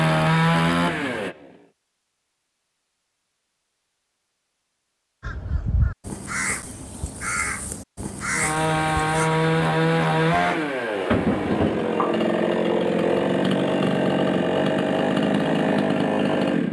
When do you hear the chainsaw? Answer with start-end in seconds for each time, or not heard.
0.0-1.7, 8.3-16.6.